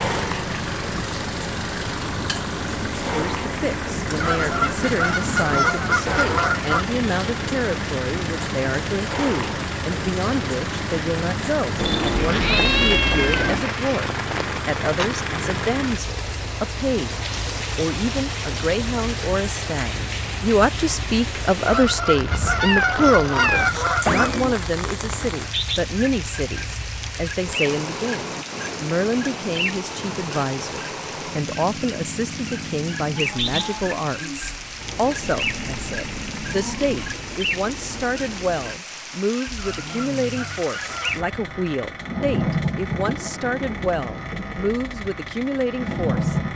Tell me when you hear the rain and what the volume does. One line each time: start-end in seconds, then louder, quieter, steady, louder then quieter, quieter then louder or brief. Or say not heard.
0.0-46.5 steady.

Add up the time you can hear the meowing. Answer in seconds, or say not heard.
6 s.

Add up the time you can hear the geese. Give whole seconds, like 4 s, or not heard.
7 s.